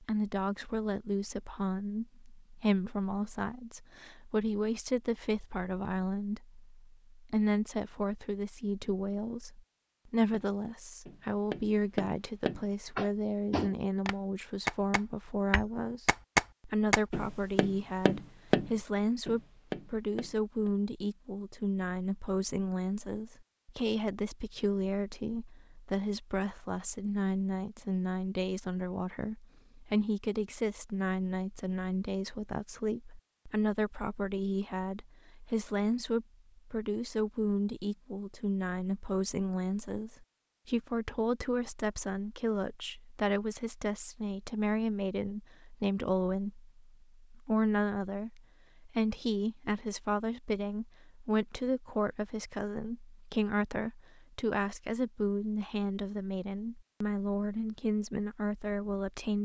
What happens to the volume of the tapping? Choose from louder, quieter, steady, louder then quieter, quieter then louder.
louder then quieter.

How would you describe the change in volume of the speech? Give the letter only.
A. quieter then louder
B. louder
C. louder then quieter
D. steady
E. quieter
D.